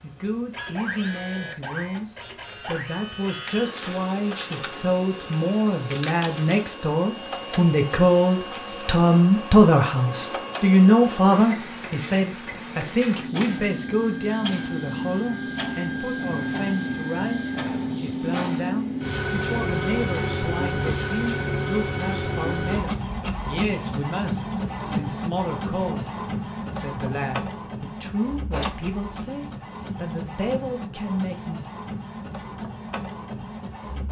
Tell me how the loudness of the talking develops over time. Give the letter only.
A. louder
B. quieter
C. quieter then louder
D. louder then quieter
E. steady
D.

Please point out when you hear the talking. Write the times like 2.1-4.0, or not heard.
0.0-31.6.